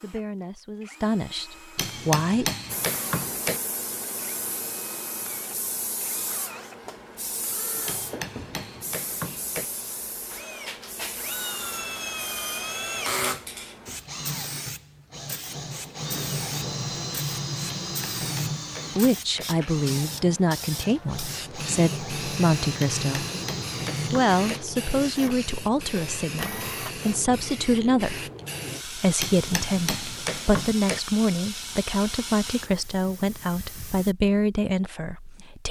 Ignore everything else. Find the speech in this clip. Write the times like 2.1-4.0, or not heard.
0.0-2.5, 18.9-23.2, 24.1-28.2, 28.9-35.6.